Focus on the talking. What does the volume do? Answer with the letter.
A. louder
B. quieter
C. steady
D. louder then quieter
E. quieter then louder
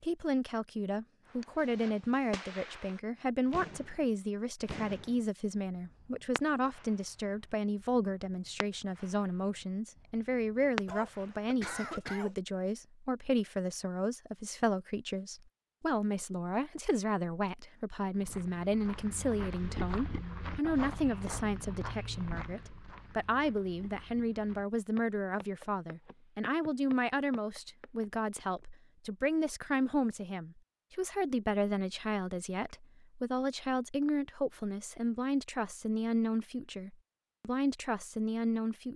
C.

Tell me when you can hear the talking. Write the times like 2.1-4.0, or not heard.
0.0-38.9.